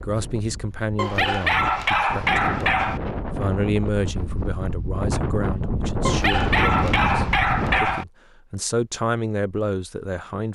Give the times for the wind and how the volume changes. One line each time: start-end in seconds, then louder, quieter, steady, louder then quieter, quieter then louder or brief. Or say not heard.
0.0-8.0 louder.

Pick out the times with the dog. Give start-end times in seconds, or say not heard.
0.9-3.0, 6.0-8.1.